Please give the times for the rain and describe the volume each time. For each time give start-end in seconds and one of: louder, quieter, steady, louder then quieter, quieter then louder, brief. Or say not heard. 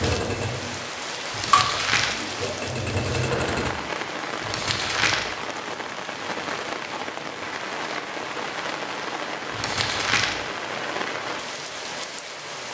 0.0-12.7 steady.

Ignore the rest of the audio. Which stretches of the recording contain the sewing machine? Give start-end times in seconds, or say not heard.
0.0-3.8.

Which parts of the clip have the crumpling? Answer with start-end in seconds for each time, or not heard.
1.3-2.2, 4.4-5.3, 9.5-10.4.